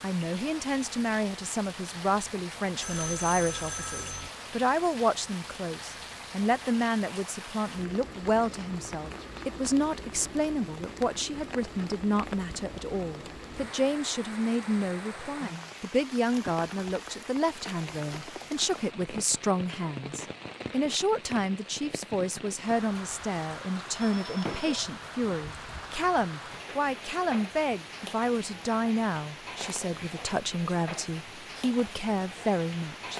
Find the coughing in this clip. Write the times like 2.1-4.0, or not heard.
not heard.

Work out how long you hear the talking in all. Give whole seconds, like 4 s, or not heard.
33 s.